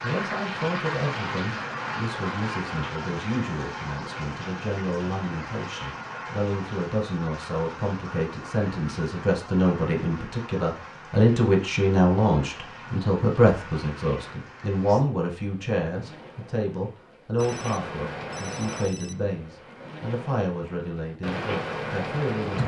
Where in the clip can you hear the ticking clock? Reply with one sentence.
The ticking clock can't be heard in this clip.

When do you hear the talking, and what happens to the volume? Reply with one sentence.
The talking can be heard from 0.0 to 22.6 s, getting louder then quieter.